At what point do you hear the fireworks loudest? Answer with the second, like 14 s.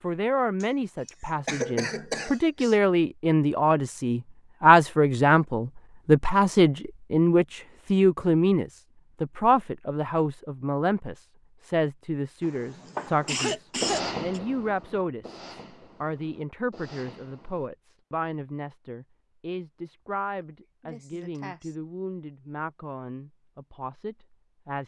14 s.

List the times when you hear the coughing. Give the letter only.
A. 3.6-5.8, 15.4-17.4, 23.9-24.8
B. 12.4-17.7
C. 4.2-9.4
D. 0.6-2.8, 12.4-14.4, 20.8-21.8
D.